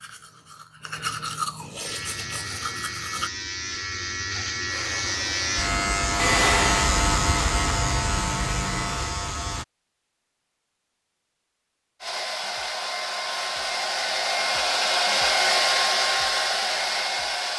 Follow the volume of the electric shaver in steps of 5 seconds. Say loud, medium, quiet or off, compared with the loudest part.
medium, loud, off, off.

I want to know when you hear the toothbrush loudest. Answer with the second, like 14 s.
1 s.